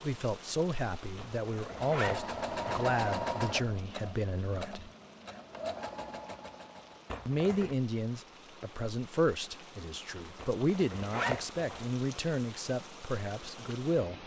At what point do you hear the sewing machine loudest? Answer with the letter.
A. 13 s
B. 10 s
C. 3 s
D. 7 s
C.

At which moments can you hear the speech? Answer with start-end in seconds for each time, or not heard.
0.0-4.9, 7.2-14.2.